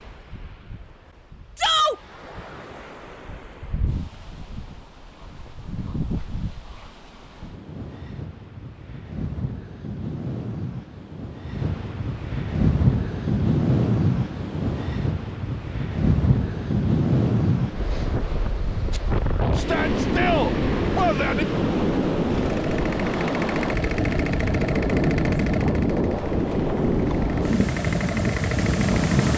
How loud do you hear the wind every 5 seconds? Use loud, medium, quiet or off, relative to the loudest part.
quiet, quiet, loud, loud, loud, loud.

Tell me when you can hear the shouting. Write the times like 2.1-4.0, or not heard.
1.6-2.0, 19.6-21.4.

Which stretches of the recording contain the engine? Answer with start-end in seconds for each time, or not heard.
22.3-29.3.